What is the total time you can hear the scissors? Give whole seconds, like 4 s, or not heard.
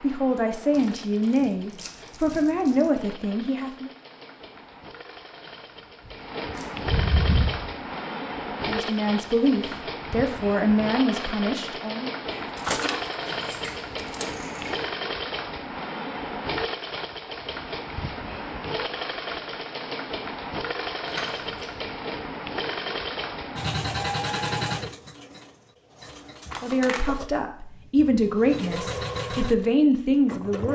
4 s.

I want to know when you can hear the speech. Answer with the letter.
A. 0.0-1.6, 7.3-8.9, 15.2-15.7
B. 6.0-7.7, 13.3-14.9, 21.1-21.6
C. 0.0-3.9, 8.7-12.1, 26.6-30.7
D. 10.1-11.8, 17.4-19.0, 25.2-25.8
C.